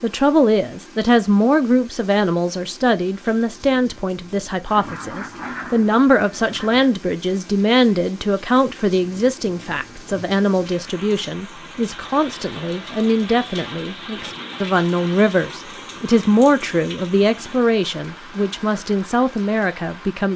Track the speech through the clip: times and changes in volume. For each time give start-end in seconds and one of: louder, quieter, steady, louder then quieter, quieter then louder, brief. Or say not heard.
0.0-20.3 steady.